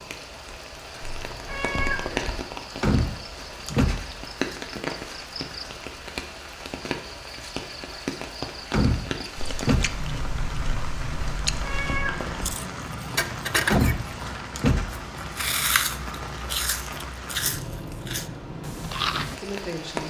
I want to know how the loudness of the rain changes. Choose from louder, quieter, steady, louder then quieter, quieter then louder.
steady.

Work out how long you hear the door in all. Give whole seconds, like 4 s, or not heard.
4 s.